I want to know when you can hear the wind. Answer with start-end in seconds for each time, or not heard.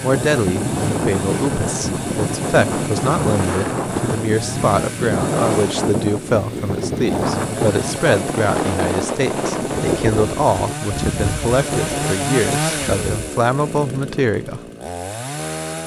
0.0-13.3.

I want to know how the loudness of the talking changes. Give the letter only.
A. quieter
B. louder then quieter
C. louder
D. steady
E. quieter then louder
D.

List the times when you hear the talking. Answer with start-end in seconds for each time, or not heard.
0.0-14.6.